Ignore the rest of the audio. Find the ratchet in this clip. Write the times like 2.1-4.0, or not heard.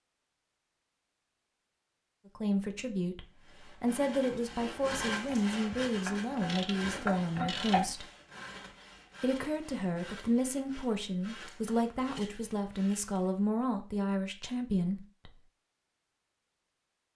5.3-7.9.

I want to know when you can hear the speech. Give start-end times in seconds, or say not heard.
2.4-8.1, 9.2-15.3.